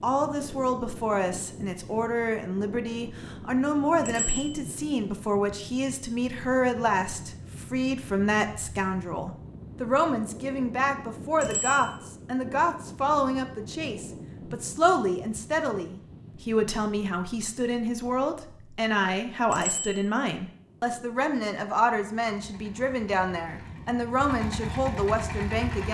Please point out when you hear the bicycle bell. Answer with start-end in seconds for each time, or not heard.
4.0-4.5, 11.4-11.9, 19.5-20.0.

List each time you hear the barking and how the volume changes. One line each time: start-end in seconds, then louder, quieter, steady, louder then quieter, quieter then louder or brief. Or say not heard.
not heard.